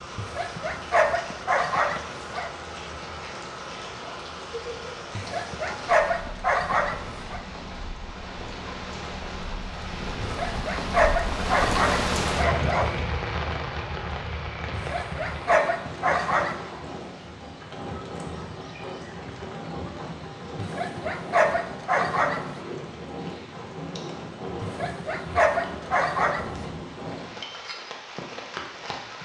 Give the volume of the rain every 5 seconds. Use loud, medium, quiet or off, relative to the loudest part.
medium, medium, loud, medium, medium, medium.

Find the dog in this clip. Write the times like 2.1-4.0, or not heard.
0.1-2.5, 5.2-7.4, 10.2-12.9, 14.7-16.6, 20.6-22.5, 24.6-26.6.